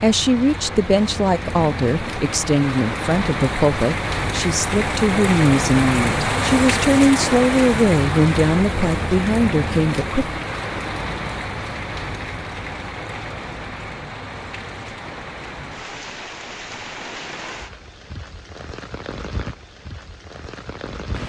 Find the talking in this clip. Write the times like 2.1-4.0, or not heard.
0.0-10.4.